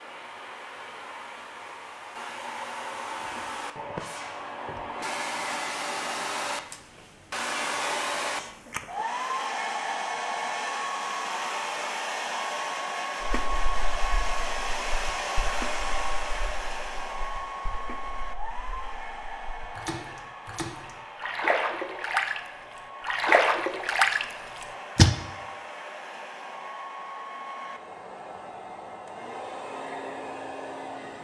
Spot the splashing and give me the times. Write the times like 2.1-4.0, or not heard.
13.2-22.4, 23.0-25.1.